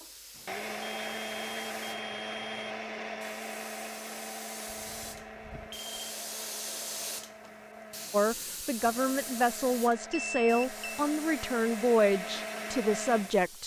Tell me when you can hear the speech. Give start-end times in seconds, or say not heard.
8.1-13.6.